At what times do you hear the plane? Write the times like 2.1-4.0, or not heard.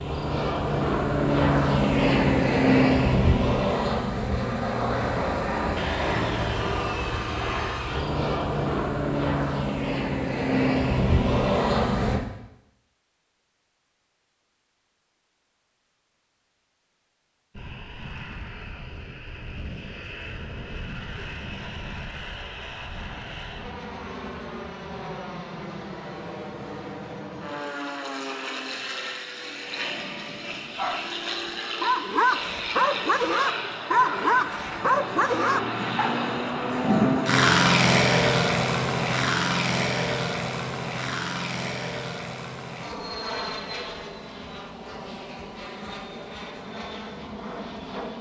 0.0-12.2, 17.6-48.1.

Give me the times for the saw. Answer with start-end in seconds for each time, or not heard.
5.8-8.1.